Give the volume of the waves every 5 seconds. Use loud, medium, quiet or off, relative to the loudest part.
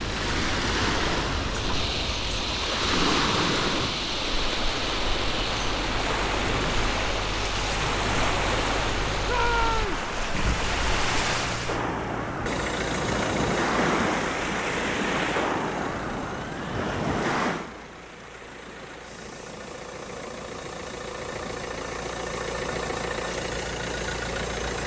loud, loud, loud, loud, quiet.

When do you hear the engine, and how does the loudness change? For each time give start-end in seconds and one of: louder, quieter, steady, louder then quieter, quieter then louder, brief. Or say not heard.
0.0-24.8 quieter then louder.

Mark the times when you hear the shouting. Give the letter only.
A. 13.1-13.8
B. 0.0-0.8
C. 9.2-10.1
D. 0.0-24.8
C.